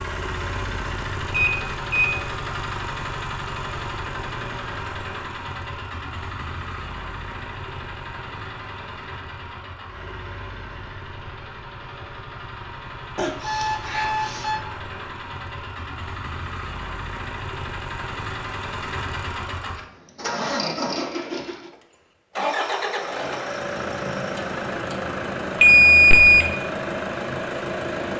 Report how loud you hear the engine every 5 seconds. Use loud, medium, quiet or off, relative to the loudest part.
loud, medium, medium, medium, loud, loud.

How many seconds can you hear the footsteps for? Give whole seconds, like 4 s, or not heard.
not heard.